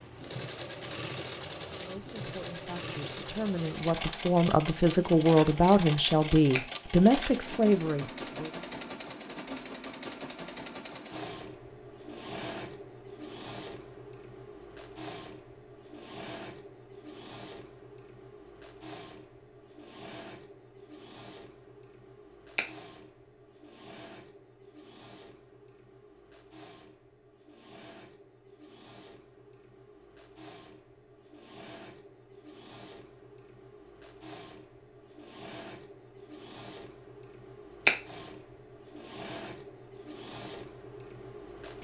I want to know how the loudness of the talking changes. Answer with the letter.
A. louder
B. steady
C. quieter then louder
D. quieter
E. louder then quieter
A.